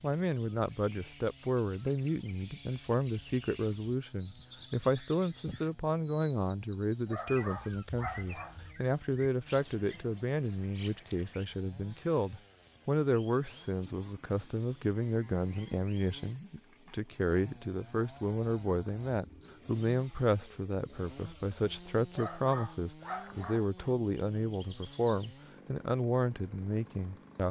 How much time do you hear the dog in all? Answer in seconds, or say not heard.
3 s.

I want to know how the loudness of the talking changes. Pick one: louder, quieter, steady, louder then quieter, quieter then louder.
steady.